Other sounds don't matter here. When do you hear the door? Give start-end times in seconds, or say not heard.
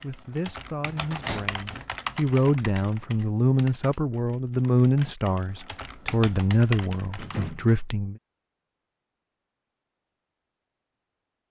0.9-1.9, 7.1-7.8.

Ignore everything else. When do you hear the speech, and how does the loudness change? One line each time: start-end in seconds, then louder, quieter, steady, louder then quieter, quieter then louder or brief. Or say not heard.
0.0-8.2 louder.